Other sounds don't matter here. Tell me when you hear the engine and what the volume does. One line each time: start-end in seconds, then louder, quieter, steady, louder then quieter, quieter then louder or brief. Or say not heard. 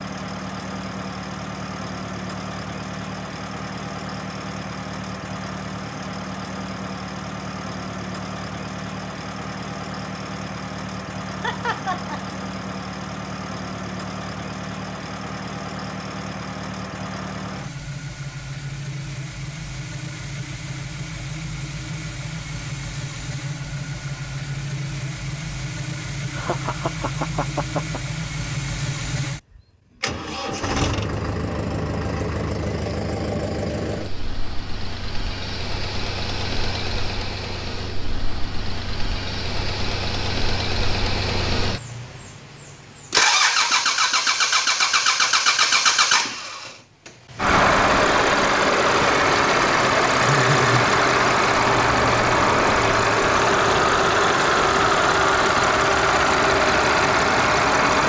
0.0-58.0 louder.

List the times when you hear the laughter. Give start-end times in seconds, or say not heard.
11.4-12.3, 26.3-28.0, 50.1-50.9.